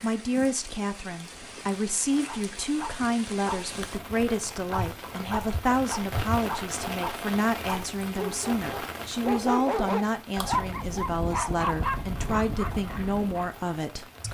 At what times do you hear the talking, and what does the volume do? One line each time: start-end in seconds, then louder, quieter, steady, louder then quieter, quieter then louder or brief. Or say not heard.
0.0-14.2 steady.